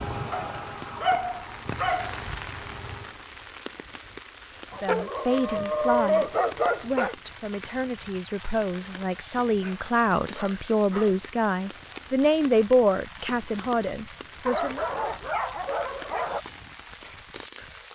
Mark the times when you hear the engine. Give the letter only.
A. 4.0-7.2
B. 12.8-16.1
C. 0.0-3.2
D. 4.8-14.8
C.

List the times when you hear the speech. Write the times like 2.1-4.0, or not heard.
4.8-14.8.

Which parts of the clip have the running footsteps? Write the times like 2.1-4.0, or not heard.
not heard.